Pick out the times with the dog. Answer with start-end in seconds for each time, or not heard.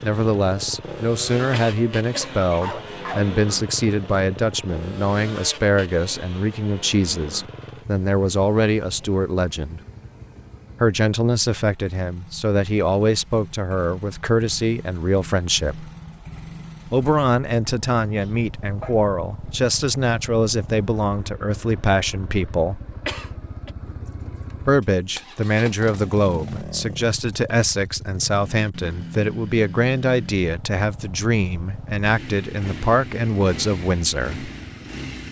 2.4-3.3, 18.1-19.6.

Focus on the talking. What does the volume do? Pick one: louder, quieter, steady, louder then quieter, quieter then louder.
steady.